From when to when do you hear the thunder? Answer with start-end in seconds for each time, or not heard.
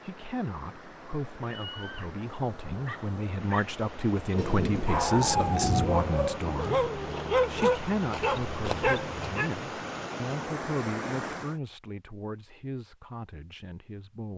4.3-6.9.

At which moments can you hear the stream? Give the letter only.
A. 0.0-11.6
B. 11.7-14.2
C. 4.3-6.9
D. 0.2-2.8
A.